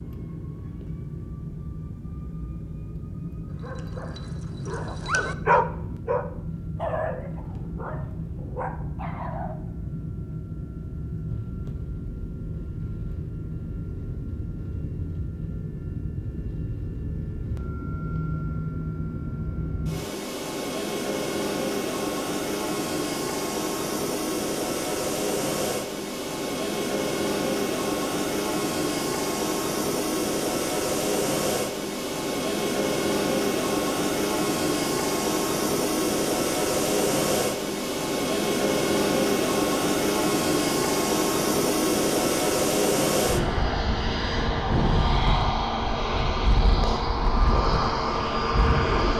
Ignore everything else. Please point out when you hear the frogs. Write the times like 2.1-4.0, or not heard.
not heard.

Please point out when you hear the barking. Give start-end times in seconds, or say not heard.
3.5-9.6.